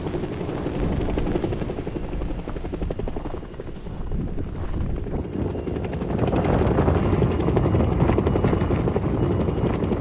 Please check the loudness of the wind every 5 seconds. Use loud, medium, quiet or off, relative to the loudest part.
medium, loud.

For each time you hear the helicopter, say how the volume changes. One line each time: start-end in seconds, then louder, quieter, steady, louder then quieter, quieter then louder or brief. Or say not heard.
0.0-9.9 quieter then louder.